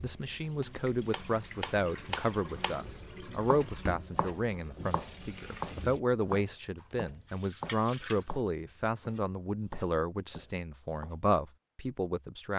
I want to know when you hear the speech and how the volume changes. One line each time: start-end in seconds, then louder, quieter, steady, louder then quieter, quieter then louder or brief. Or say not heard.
0.0-12.5 steady.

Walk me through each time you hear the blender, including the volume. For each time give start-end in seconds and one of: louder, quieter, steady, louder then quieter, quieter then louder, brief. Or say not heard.
not heard.